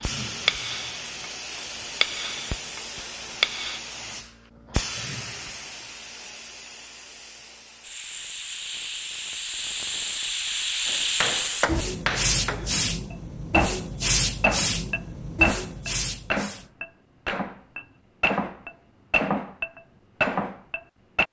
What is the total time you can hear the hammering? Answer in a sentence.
You can hear the hammering for 14 seconds altogether.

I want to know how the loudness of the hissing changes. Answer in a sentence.
The volume of the hissing goes up.